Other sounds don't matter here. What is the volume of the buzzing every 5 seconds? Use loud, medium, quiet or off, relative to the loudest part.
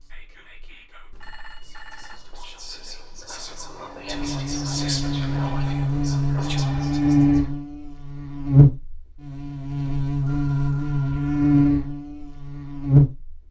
quiet, loud, loud.